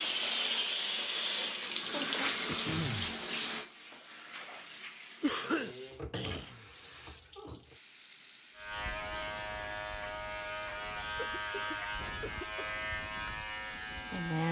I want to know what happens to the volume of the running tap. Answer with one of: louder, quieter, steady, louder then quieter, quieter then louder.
quieter.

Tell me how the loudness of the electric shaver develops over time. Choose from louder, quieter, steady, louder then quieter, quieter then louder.
steady.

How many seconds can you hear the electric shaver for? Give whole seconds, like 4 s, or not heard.
6 s.